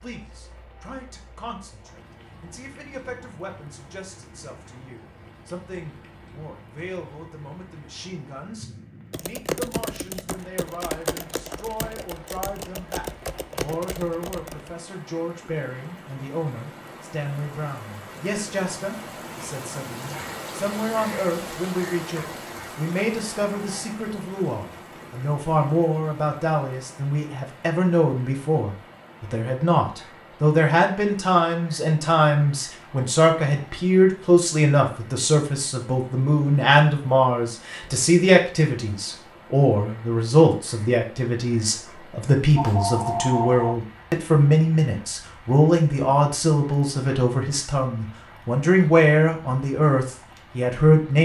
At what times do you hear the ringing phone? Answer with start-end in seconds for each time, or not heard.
42.5-43.8.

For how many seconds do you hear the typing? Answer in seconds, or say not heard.
6 s.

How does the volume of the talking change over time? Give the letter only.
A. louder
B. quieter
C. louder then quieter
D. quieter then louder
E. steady
A.